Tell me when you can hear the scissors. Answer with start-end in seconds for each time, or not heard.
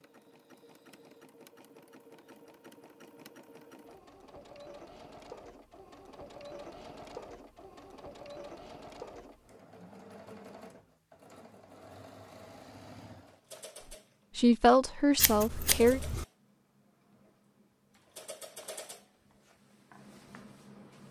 15.2-16.2.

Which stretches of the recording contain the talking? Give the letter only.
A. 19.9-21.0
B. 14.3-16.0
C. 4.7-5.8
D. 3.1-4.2
B.